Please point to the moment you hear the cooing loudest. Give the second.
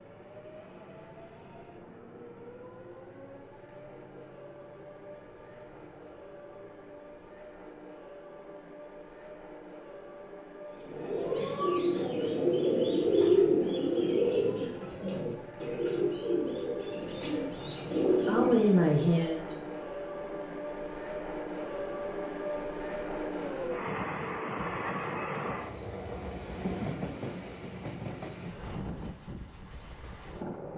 13 s.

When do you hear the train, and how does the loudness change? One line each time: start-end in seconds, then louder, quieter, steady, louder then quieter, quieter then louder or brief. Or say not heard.
0.0-30.7 louder.